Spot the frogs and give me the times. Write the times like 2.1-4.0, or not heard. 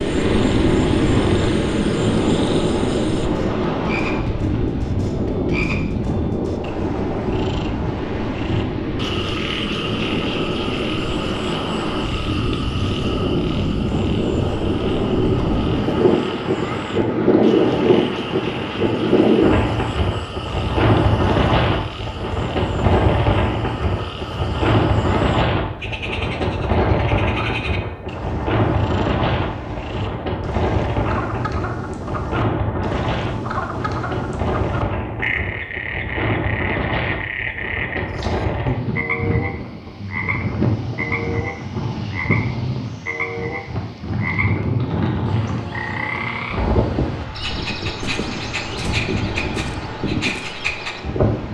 0.0-51.2.